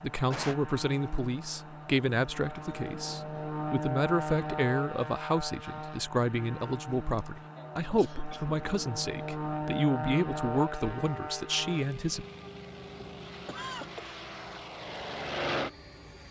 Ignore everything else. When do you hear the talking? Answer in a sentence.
You can hear the talking from 0.0 to 12.2 s.